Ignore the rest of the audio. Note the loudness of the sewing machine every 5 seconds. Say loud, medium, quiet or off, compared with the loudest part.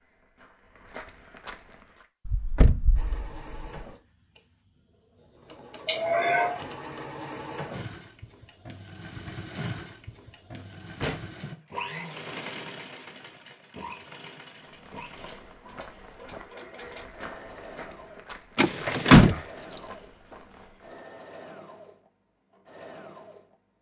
medium, loud, loud, medium, medium.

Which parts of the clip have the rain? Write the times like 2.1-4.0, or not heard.
not heard.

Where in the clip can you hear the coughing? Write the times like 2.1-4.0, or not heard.
5.8-6.6.